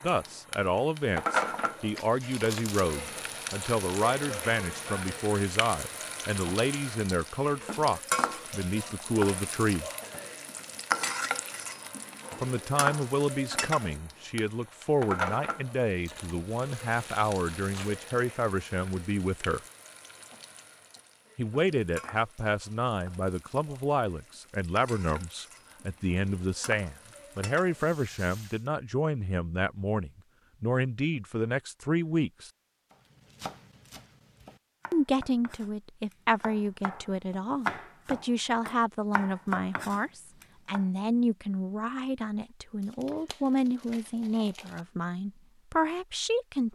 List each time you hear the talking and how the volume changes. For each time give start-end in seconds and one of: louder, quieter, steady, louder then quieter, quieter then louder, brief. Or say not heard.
0.0-9.8 steady
12.4-19.6 steady
21.4-32.5 steady
34.9-46.7 steady.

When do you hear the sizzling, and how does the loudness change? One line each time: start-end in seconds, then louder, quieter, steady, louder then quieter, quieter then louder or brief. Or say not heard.
0.0-28.6 quieter.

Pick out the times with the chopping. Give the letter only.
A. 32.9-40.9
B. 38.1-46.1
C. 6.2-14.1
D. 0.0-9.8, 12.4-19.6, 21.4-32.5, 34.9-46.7
A.